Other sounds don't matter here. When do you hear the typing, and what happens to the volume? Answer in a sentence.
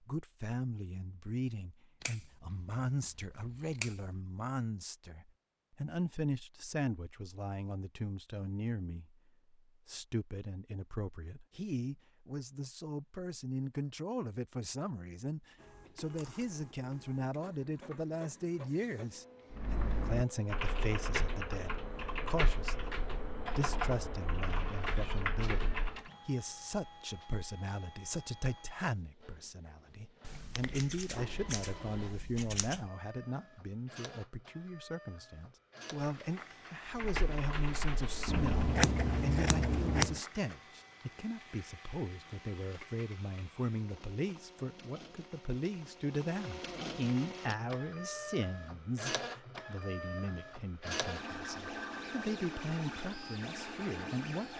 The typing can be heard from 19.5 to 26.1 s, at a steady volume; and briefly from 36.9 to 38.9 s.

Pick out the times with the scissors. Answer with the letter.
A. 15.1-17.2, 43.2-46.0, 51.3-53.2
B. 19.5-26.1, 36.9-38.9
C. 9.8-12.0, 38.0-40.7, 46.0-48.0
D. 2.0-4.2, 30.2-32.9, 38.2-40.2
D.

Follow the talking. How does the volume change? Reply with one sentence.
The loudness of the talking stays about the same.